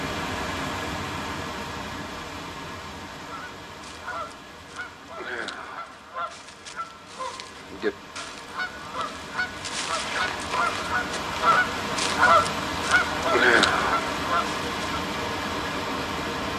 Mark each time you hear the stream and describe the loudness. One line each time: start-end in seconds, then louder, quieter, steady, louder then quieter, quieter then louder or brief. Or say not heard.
0.0-16.5 quieter then louder.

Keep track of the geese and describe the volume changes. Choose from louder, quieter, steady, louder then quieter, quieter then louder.
louder.